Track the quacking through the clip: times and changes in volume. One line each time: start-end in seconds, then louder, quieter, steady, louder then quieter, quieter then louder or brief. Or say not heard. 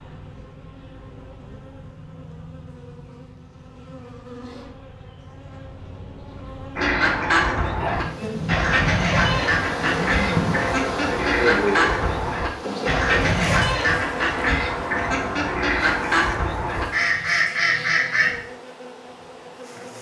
6.8-18.4 steady.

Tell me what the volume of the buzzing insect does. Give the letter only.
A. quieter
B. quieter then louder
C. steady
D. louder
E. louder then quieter
E.